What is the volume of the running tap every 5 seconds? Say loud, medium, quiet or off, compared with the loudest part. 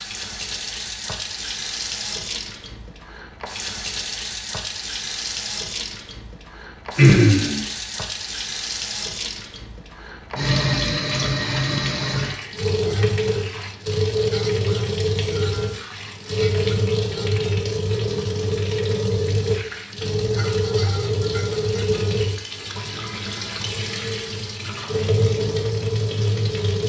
medium, medium, loud, loud, loud, loud.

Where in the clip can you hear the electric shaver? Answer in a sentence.
You can't hear the electric shaver here.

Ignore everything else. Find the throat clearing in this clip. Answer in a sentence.
You can hear the throat clearing from 7.0 to 7.6 s.